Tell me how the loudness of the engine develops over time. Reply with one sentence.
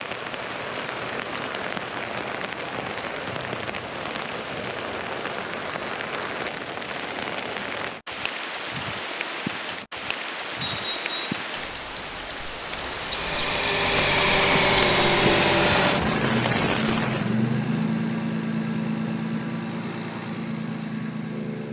The volume of the engine goes down.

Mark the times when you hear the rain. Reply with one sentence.
You can hear the rain from 0.0 to 17.4 s.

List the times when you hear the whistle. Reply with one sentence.
You can hear the whistle from 10.6 to 11.4 s.